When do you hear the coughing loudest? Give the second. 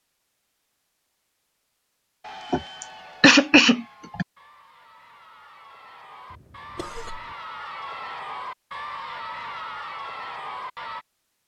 3 s.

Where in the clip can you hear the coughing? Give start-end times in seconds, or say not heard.
2.5-4.2, 6.3-7.3.